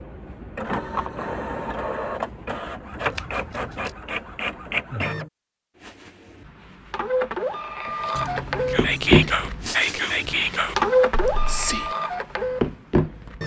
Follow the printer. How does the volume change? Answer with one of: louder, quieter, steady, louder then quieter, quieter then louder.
louder.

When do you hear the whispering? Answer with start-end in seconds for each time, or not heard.
8.7-11.9.